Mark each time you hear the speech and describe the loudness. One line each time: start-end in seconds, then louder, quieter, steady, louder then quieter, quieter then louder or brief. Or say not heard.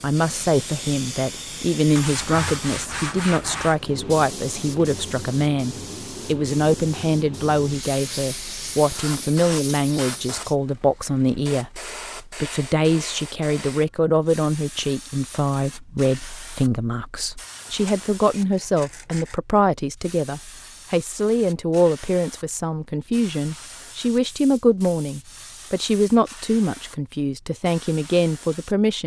0.0-29.0 steady.